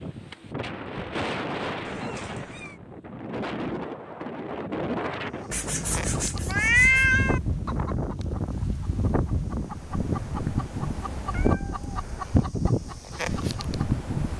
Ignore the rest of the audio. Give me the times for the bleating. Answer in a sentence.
You can't hear the bleating here.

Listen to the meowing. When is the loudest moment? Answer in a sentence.
The volume of the meowing peaks at 7 seconds.